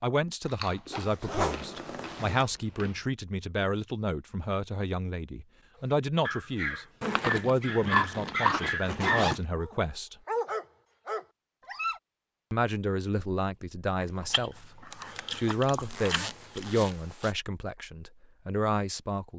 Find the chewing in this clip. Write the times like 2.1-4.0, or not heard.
0.5-3.0, 7.0-9.3, 14.0-16.6.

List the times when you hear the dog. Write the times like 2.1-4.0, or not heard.
6.2-12.0.